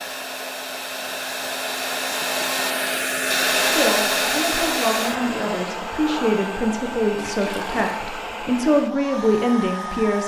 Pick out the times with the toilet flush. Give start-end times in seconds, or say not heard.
7.2-8.1.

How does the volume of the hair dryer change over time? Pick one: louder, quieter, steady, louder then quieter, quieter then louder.
louder then quieter.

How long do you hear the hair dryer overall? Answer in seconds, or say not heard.
10 s.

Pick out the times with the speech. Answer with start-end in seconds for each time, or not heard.
3.6-10.2.